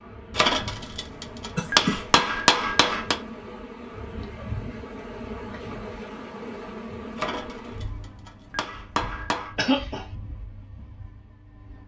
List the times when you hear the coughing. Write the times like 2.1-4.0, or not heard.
1.6-2.2, 9.6-10.1.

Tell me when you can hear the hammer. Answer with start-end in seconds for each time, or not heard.
0.3-3.2, 7.2-9.6.